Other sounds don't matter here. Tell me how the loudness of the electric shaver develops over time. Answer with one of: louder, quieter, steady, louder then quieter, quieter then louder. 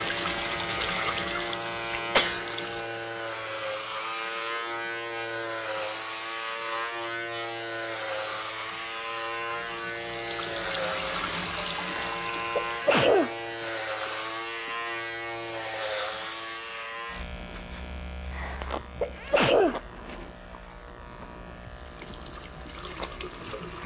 quieter.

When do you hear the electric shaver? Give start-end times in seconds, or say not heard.
0.0-23.8.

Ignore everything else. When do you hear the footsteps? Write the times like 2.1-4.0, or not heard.
not heard.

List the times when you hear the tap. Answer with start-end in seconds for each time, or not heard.
0.0-2.9, 9.5-12.8, 21.7-23.8.